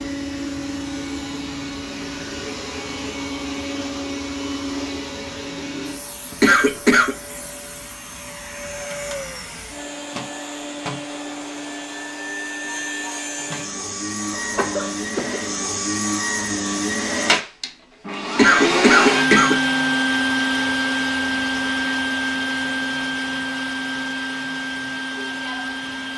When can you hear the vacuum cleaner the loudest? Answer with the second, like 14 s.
19 s.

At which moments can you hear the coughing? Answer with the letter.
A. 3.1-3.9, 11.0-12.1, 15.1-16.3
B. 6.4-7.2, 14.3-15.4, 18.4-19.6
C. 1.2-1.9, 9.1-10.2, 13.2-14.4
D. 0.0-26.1
B.